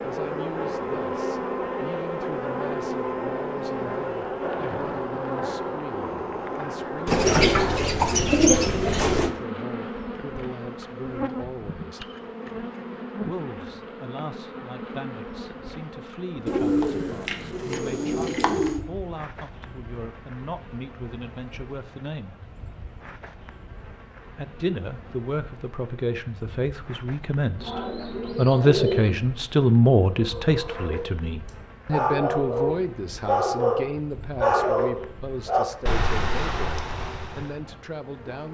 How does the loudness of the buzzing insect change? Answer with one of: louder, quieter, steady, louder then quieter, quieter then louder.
quieter.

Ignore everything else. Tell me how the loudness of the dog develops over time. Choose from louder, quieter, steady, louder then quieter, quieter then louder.
louder then quieter.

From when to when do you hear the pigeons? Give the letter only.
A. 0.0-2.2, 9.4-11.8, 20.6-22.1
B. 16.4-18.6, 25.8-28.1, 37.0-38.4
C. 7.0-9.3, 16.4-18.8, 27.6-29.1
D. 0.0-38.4
C.